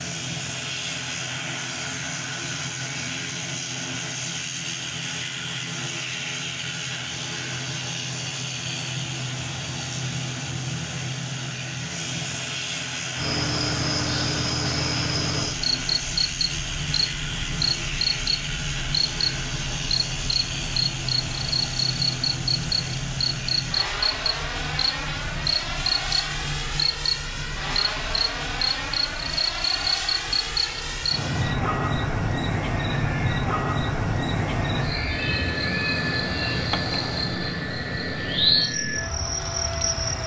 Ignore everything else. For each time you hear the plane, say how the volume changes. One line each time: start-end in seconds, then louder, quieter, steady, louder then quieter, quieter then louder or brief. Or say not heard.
0.0-40.2 steady.